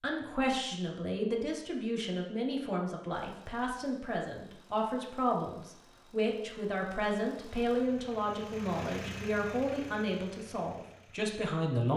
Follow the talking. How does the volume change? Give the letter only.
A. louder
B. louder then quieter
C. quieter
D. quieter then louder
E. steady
E.